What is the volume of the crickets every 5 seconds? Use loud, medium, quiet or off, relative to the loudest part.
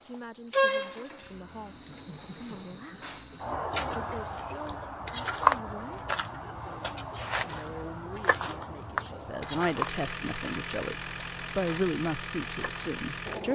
loud, loud, quiet.